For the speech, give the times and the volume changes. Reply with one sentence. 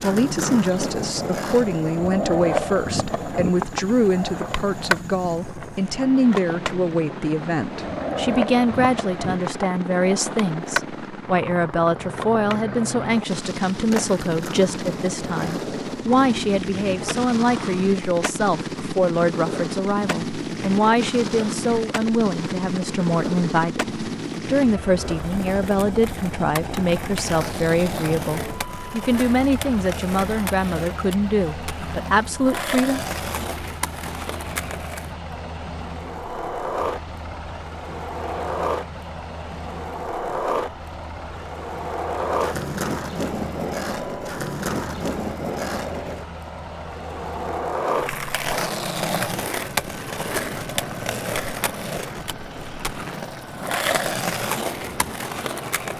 The speech can be heard from 0.0 to 33.0 s, at a steady volume.